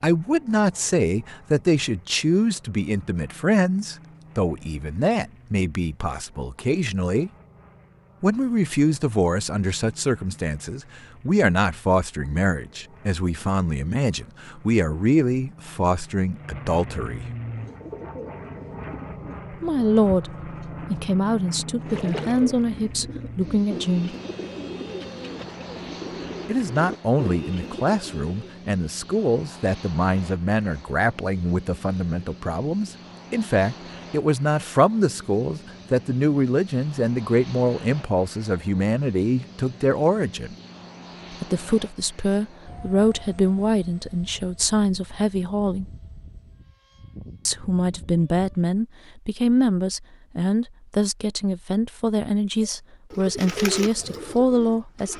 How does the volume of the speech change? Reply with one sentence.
The volume of the speech stays about the same.